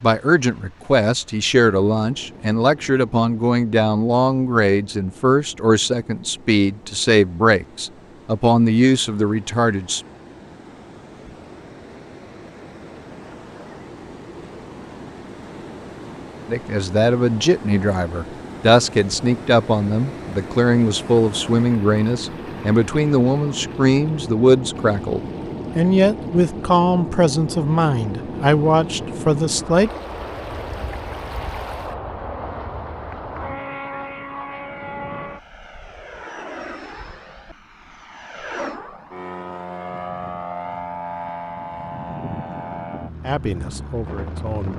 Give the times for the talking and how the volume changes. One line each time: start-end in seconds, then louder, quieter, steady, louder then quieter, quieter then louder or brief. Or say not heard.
0.0-10.0 steady
16.4-30.0 steady
43.2-44.7 brief.